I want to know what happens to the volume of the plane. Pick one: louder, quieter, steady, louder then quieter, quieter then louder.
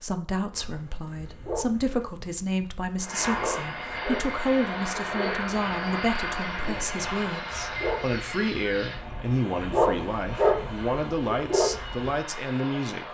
quieter.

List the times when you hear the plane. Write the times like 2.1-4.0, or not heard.
3.0-13.0.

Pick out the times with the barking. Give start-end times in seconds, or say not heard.
0.5-12.2.